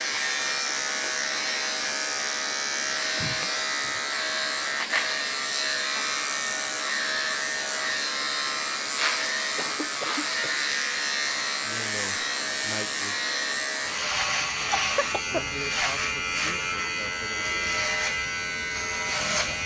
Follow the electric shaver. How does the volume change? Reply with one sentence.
The loudness of the electric shaver stays about the same.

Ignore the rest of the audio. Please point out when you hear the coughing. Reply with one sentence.
The coughing can be heard from 3.1 to 3.9 s, from 9.6 to 10.6 s and from 14.6 to 15.9 s.